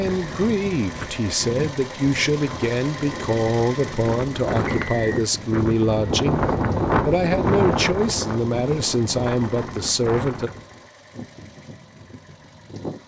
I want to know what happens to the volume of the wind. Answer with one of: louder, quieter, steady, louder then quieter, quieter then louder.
louder then quieter.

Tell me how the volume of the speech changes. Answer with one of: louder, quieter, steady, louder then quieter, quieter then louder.
steady.